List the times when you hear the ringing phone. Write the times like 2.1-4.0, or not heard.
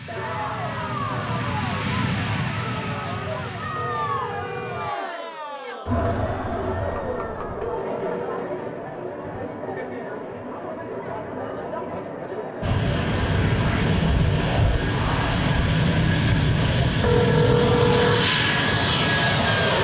3.8-4.8, 7.6-8.3, 17.0-18.3.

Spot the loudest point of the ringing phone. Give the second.
18 s.